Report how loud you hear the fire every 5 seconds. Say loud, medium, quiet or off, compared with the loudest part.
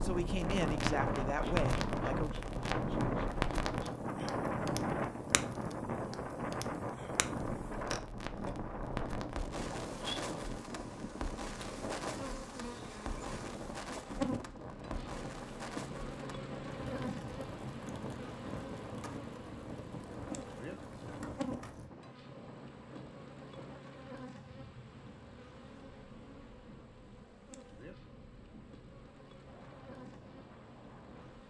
loud, medium, medium, medium, medium, off, off.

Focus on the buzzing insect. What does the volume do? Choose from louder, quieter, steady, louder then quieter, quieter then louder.
louder then quieter.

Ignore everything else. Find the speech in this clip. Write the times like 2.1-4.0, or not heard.
0.0-2.4.